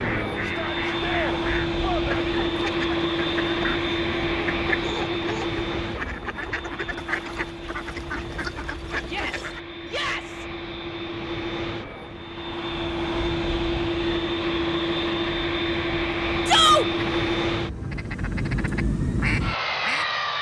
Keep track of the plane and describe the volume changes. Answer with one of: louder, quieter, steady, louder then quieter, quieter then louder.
quieter then louder.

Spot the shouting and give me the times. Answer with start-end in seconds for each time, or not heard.
0.4-2.3, 9.1-10.4, 16.4-16.9.